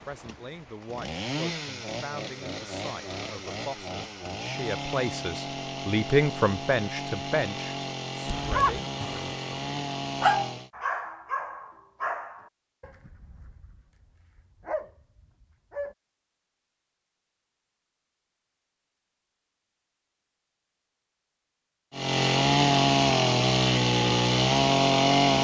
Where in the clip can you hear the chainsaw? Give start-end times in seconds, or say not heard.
0.0-10.7, 21.9-25.3.